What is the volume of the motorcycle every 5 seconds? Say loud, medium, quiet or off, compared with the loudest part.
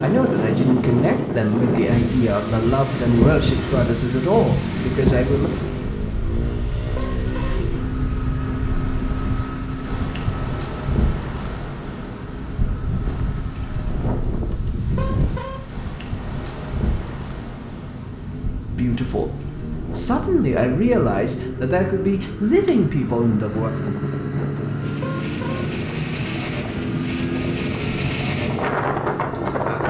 loud, loud, medium, medium, loud, loud.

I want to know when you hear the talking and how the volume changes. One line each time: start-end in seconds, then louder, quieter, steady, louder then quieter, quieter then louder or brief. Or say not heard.
0.0-5.5 steady
18.8-23.7 louder.